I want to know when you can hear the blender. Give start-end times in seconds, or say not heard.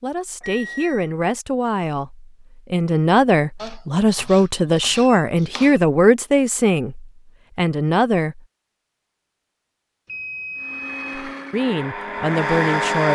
10.6-13.1.